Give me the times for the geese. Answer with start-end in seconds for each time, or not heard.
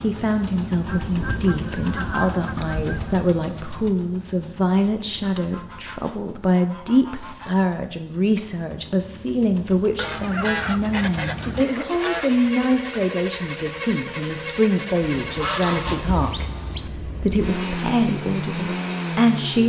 0.8-3.3, 5.2-7.7, 9.9-12.4, 15.2-16.9.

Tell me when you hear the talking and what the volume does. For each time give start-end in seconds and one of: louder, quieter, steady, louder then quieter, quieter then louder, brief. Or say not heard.
0.0-19.6 steady.